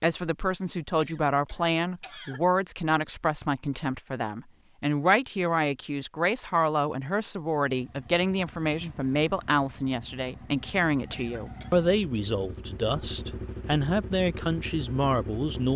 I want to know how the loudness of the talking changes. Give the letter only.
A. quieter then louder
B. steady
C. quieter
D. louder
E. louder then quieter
B.